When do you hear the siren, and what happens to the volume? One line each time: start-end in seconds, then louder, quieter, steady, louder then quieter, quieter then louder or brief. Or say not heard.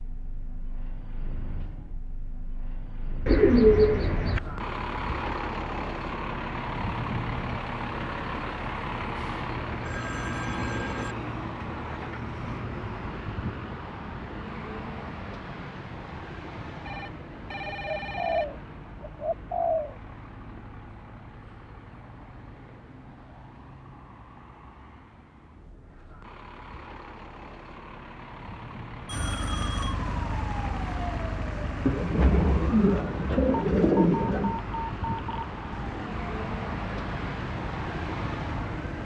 29.1-39.0 quieter.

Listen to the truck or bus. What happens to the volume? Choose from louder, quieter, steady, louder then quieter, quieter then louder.
quieter then louder.